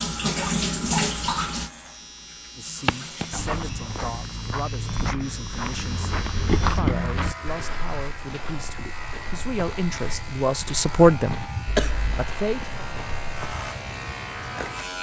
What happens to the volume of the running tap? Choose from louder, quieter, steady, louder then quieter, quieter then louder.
quieter then louder.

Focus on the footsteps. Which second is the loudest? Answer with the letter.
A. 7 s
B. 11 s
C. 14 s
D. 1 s
A.